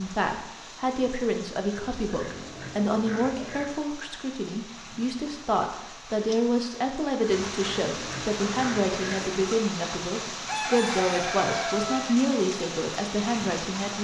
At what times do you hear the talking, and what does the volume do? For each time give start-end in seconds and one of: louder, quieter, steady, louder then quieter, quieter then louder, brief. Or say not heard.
0.0-13.9 steady.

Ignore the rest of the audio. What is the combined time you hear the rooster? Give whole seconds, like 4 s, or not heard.
2 s.